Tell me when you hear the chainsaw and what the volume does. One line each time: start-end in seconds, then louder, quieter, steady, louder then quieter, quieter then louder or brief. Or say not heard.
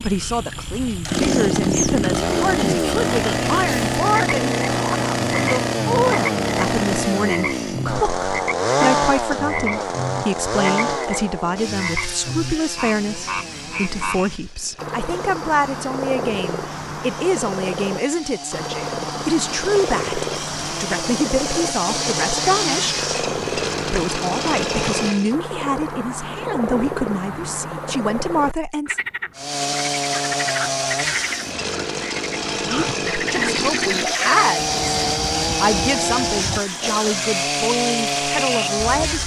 0.0-25.4 quieter then louder
29.4-39.2 steady.